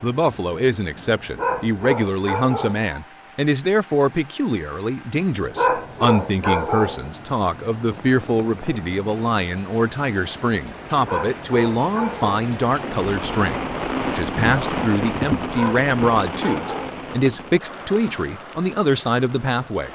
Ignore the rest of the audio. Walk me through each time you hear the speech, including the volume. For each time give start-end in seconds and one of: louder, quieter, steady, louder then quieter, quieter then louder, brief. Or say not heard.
0.0-19.9 steady.